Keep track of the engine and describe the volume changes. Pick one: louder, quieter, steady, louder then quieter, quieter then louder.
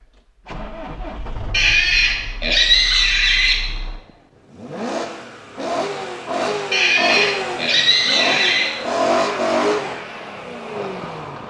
quieter then louder.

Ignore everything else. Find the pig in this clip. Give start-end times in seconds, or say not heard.
1.5-3.5, 6.7-8.7.